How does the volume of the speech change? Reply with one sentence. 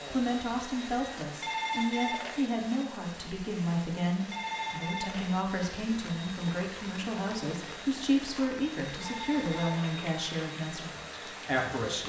The volume of the speech stays about the same.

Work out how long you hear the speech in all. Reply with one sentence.
The speech can be heard for 12 seconds in total.